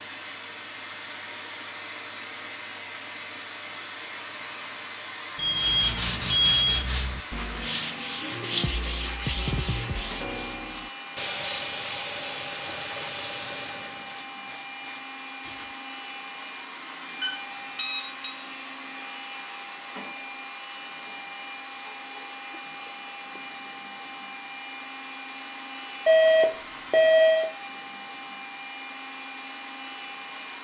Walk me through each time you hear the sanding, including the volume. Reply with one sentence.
The sanding can be heard from 5.5 to 15.8 s, getting quieter.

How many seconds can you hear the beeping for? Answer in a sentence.
The beeping can be heard for 4 seconds in total.